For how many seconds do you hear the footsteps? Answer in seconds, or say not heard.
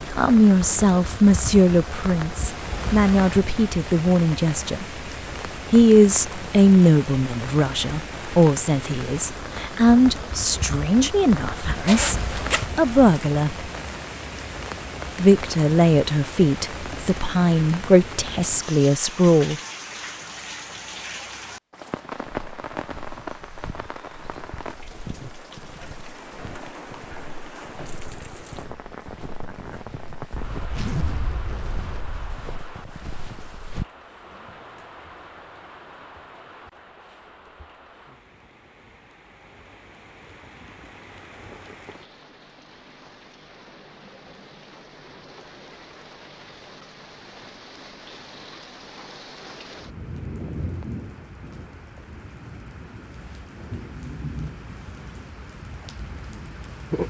12 s.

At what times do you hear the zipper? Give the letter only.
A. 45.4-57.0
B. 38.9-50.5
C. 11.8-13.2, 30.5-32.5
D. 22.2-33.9
C.